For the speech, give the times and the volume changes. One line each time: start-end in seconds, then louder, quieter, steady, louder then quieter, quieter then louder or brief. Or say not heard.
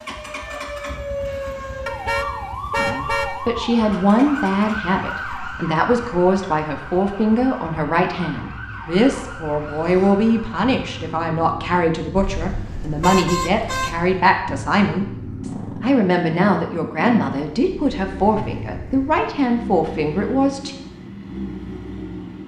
2.8-20.8 steady.